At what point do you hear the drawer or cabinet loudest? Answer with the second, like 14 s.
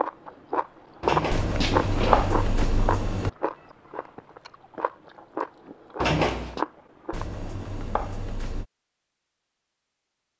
6 s.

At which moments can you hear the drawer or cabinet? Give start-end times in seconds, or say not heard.
1.0-2.6, 6.0-6.6.